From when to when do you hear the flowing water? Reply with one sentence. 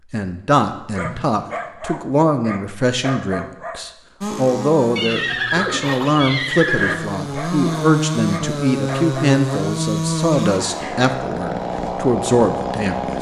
You can't hear the flowing water here.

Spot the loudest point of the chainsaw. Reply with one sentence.
The volume of the chainsaw peaks at 10 seconds.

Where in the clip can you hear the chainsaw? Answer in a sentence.
You can hear the chainsaw from 4.2 to 13.1 s.